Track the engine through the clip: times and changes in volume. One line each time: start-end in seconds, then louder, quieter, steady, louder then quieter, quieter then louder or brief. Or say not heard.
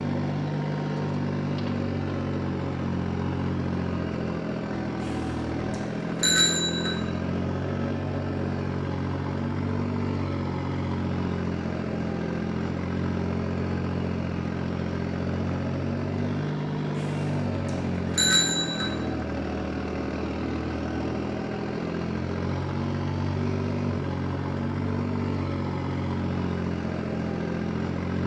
0.0-28.2 steady.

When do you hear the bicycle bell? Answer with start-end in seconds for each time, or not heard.
5.0-7.0, 16.9-18.9.